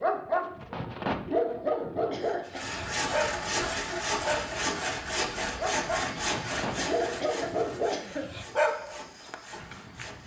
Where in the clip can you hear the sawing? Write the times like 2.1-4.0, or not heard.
2.5-10.2.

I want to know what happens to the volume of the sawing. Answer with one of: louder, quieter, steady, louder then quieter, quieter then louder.
quieter.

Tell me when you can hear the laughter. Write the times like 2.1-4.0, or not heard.
2.0-2.8, 6.7-8.3.